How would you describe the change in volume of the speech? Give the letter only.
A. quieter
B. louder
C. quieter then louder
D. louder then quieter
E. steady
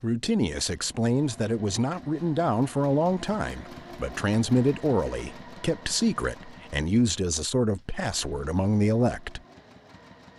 E.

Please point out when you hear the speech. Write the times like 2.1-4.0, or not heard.
0.0-9.4.